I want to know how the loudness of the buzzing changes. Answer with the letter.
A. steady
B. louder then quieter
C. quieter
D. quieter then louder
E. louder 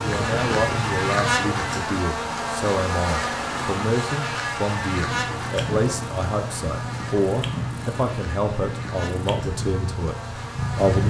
C.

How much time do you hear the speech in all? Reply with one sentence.
The speech can be heard for 11 seconds in total.